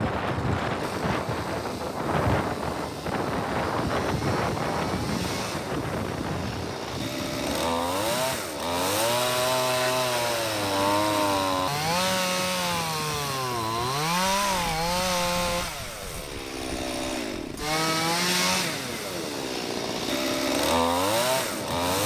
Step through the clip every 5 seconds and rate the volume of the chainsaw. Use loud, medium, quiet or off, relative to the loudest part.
quiet, loud, loud, loud, loud.